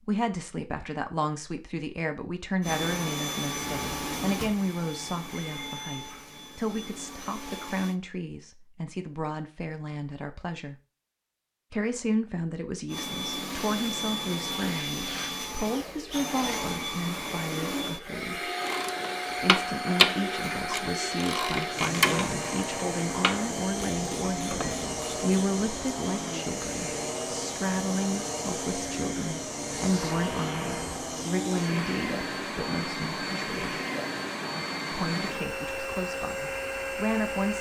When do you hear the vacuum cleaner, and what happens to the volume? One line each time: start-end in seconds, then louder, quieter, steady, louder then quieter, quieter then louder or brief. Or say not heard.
2.6-8.0 quieter
12.8-37.5 steady.